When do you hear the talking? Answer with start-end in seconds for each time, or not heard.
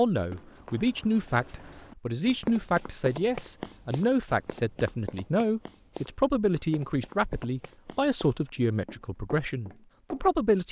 0.0-10.6.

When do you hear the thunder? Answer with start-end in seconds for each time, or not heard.
not heard.